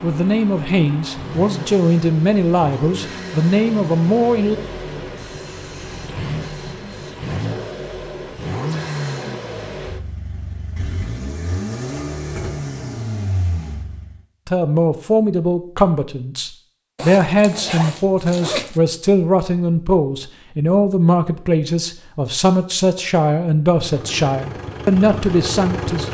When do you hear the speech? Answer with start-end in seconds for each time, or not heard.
0.0-4.6, 14.4-26.0.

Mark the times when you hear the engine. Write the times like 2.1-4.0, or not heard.
0.0-14.2, 23.8-26.0.